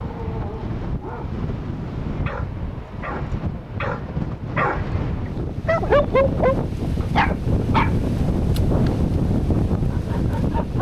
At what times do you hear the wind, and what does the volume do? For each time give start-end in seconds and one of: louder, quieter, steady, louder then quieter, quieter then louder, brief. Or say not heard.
0.0-10.7 louder.